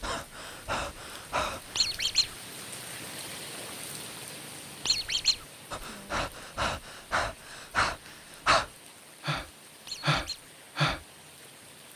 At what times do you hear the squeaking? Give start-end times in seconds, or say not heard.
1.8-2.3, 4.8-5.3, 9.8-10.4.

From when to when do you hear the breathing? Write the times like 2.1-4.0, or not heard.
0.0-1.9, 5.7-11.0.